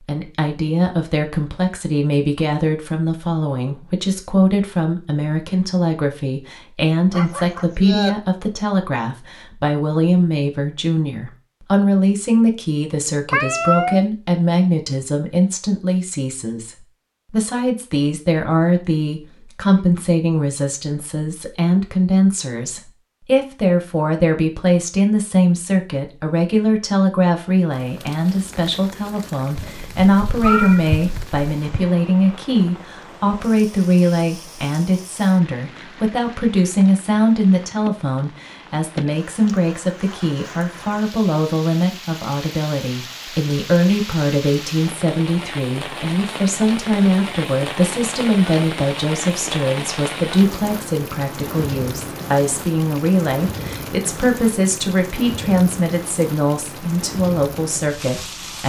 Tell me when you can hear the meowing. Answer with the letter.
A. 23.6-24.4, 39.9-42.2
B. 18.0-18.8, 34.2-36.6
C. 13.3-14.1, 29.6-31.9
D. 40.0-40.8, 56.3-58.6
C.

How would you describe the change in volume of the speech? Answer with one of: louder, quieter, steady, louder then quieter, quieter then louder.
steady.